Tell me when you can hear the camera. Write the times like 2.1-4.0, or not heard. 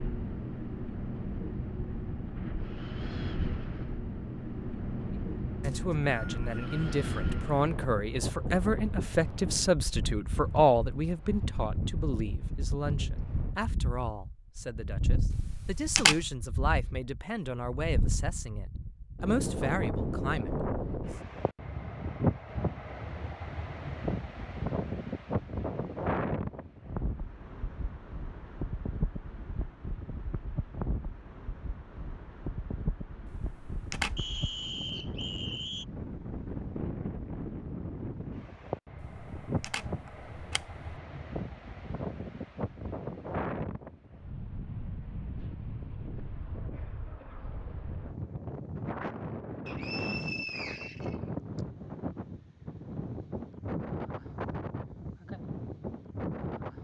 15.3-16.2, 33.2-34.2, 39.0-40.8.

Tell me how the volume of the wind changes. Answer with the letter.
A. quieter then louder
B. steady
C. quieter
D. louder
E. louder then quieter
B.